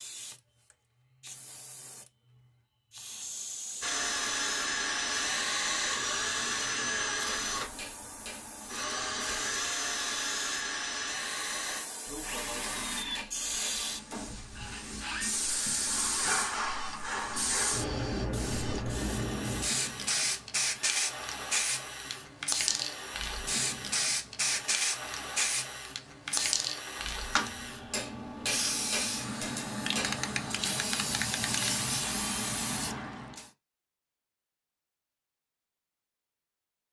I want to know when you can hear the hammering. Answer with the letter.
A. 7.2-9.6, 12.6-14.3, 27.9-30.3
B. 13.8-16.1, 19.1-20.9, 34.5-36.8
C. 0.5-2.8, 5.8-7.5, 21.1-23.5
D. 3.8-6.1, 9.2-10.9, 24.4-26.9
A.